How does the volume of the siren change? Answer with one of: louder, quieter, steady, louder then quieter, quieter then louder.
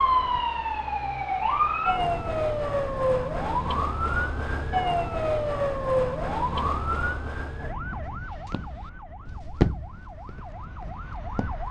quieter.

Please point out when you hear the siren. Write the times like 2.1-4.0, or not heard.
0.0-11.6.